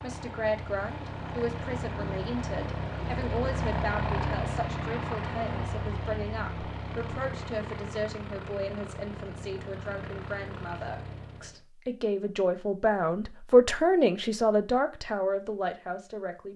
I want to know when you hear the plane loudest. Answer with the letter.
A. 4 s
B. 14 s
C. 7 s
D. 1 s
A.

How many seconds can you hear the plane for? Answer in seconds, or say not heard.
12 s.